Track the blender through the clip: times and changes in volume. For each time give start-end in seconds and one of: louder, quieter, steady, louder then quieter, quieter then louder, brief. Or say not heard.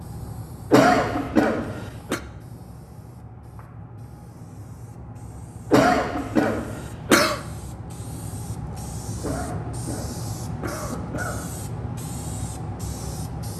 not heard.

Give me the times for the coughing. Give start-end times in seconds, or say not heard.
0.7-2.2, 5.7-7.4, 9.2-11.6.